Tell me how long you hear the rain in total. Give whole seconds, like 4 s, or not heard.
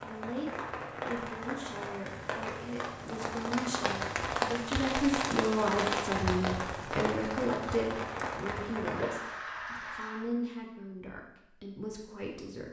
10 s.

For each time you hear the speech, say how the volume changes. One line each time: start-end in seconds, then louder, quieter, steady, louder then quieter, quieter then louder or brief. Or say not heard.
0.0-12.6 louder then quieter.